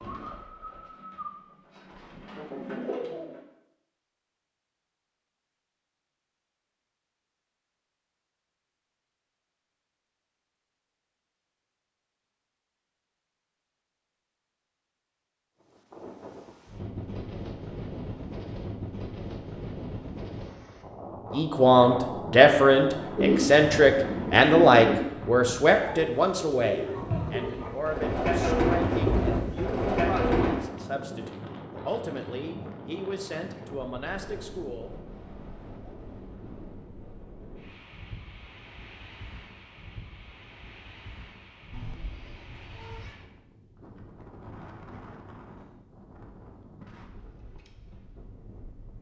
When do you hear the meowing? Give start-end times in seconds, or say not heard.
41.7-43.1.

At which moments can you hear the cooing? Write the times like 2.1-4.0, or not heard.
0.0-3.5, 23.1-30.6.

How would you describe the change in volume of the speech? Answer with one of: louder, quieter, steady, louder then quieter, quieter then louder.
quieter.